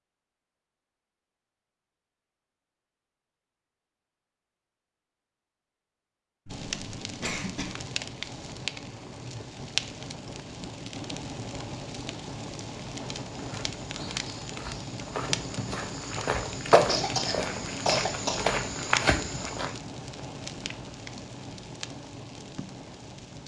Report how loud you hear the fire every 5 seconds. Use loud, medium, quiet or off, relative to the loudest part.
off, loud, loud, loud, medium.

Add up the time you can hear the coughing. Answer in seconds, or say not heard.
3 s.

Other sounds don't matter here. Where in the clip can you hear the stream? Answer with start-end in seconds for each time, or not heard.
not heard.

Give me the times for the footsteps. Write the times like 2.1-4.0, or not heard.
13.2-19.8.